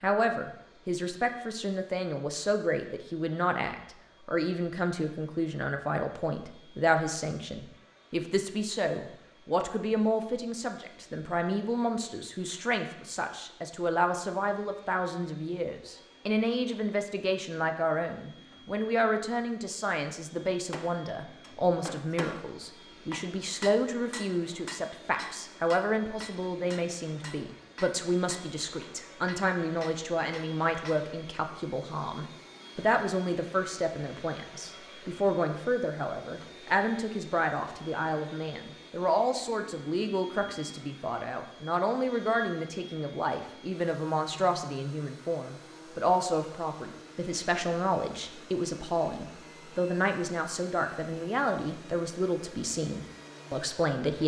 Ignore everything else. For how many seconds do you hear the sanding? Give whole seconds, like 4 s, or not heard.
not heard.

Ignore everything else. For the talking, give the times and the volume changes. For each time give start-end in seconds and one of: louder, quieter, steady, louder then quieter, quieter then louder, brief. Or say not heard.
0.0-54.2 steady.